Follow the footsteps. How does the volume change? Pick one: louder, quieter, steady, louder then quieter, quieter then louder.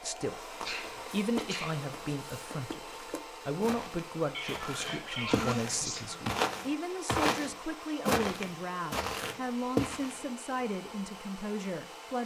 louder.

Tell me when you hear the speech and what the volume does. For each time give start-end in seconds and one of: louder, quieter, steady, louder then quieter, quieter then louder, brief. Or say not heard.
0.0-12.2 steady.